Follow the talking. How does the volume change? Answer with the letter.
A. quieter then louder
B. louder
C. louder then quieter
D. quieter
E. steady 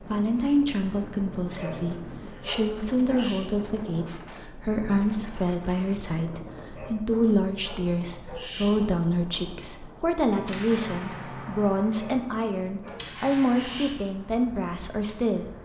E.